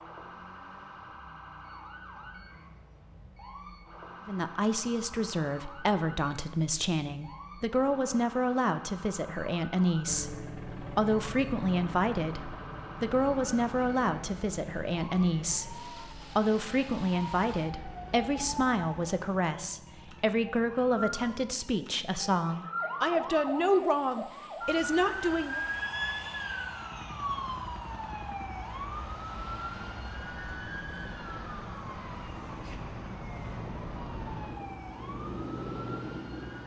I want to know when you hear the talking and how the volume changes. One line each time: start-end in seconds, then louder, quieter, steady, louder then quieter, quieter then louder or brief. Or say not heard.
4.2-25.6 steady.